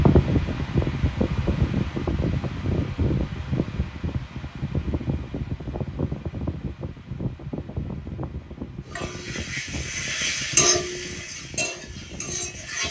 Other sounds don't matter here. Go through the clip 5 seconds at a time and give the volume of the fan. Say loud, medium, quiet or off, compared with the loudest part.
loud, medium, quiet.